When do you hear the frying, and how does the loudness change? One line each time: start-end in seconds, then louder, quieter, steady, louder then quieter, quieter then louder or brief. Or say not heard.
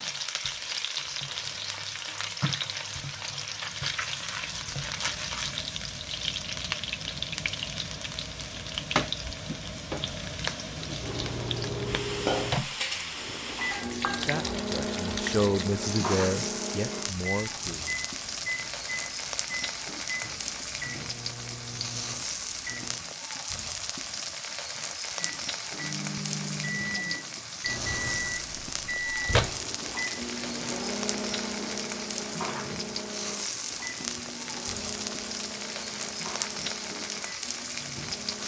0.0-38.4 steady.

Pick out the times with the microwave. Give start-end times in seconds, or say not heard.
11.0-23.1, 25.1-38.4.